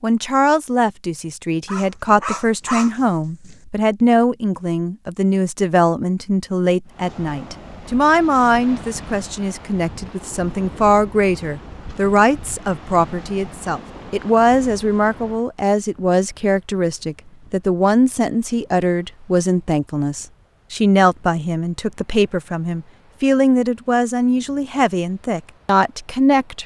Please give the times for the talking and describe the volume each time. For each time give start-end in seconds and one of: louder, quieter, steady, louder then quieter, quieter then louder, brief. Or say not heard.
0.0-26.6 steady.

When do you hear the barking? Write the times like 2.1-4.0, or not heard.
1.6-3.5.